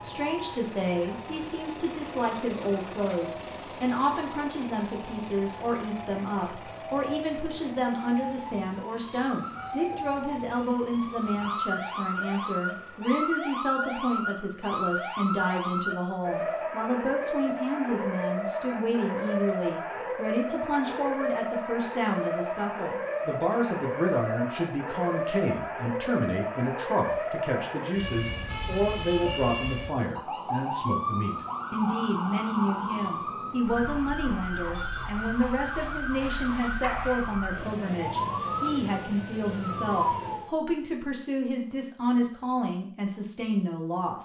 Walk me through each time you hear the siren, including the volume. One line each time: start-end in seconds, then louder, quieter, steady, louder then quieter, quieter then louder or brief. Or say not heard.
0.0-40.5 louder.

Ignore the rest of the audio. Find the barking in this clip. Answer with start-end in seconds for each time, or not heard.
36.8-37.3.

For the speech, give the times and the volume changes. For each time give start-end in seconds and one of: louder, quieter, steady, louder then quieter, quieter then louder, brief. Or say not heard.
0.0-44.1 steady.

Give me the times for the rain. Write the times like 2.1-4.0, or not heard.
not heard.